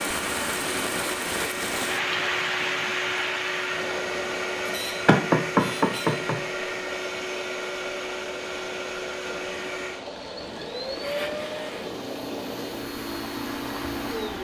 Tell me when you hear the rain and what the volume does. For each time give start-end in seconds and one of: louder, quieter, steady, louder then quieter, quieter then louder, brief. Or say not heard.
0.0-14.3 quieter.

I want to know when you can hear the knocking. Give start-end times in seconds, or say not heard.
5.0-6.3.